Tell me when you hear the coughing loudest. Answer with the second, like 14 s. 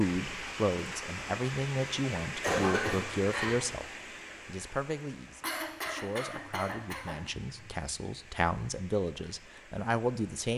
3 s.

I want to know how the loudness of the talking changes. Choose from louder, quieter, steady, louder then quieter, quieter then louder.
quieter then louder.